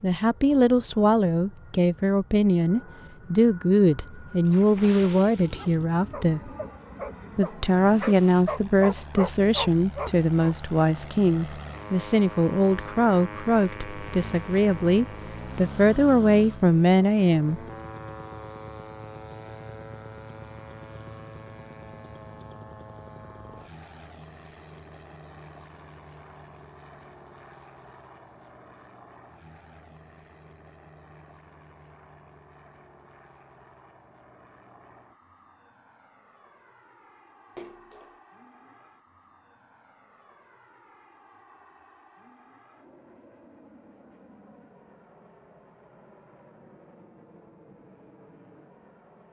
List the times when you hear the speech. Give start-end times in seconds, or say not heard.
0.0-6.5, 7.3-17.6.